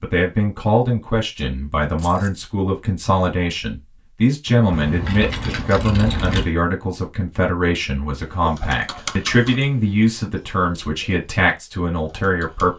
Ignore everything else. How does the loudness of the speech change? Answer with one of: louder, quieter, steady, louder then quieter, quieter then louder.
steady.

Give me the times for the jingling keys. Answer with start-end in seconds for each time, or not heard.
1.9-2.4, 4.7-6.5, 8.8-10.2.